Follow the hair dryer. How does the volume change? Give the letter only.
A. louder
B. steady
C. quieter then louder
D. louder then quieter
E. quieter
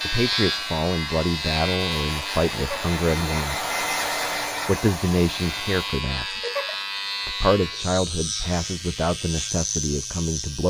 D.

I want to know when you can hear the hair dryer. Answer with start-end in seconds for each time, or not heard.
0.0-6.0.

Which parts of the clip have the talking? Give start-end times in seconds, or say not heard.
0.0-3.7, 4.7-6.4, 7.2-10.6.